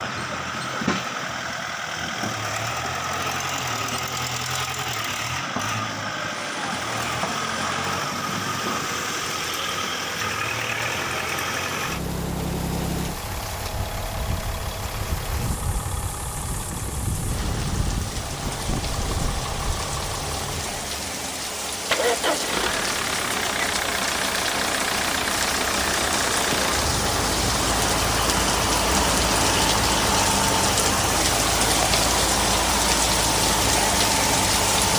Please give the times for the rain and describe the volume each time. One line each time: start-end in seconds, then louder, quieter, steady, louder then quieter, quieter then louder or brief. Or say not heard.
6.3-34.9 louder.